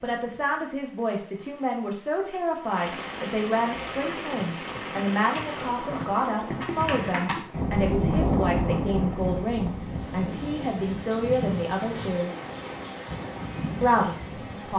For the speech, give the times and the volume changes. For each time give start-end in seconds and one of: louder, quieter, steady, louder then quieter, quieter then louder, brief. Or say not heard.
0.0-12.3 steady
13.8-14.7 brief.